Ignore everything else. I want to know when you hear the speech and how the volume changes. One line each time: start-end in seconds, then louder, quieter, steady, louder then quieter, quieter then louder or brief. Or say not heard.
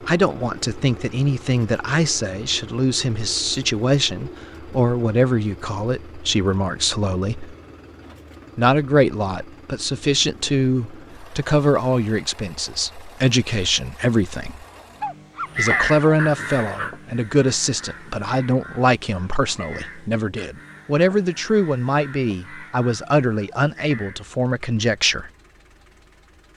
0.1-7.5 steady
8.6-14.7 quieter then louder
15.6-25.3 steady.